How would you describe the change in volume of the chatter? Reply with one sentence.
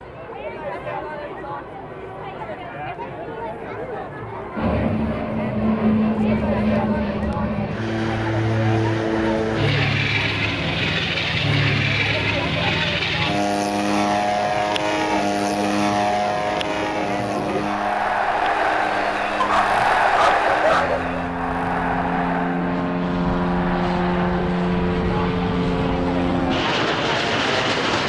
The volume of the chatter goes up, then down.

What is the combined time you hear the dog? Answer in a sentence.
You can hear the dog for 2 seconds altogether.